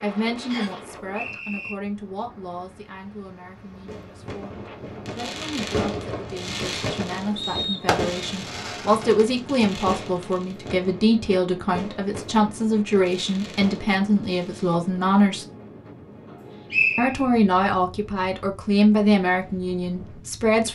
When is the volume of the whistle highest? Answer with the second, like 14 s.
17 s.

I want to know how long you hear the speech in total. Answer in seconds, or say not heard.
19 s.